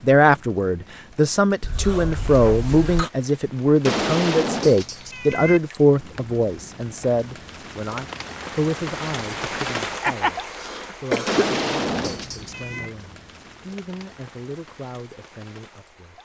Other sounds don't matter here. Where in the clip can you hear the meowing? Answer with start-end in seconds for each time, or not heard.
3.9-5.6, 11.2-12.9.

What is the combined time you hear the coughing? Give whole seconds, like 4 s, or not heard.
3 s.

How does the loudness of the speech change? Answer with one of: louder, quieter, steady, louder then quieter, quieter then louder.
quieter.